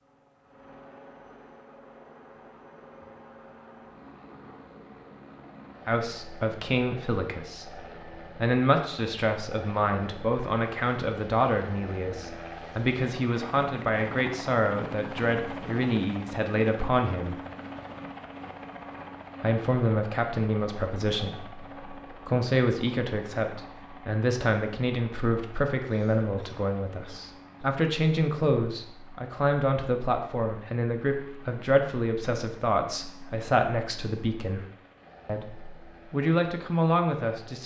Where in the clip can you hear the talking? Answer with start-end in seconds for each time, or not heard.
5.8-17.4, 19.4-34.6, 35.2-37.6.